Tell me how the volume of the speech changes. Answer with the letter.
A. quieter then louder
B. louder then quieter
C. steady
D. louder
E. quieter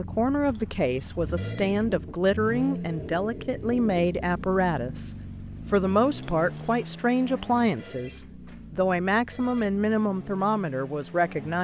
C.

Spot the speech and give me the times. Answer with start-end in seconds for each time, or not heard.
0.0-11.5.